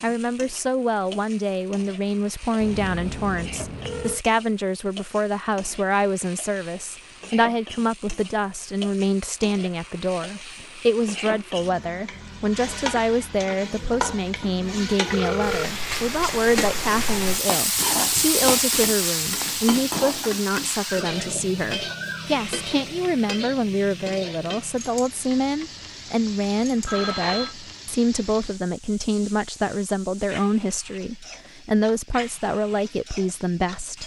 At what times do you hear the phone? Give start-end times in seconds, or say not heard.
2.6-4.2, 15.1-15.8, 26.9-27.6.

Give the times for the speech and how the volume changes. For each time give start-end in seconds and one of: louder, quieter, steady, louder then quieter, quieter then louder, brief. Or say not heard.
0.0-34.0 steady.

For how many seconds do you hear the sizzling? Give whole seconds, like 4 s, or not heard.
34 s.